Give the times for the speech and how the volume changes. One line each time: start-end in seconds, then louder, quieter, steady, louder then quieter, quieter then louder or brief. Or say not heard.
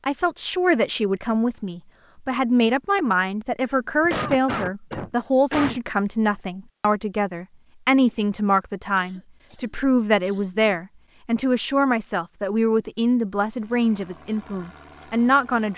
0.1-15.7 steady.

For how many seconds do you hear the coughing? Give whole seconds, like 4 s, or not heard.
4 s.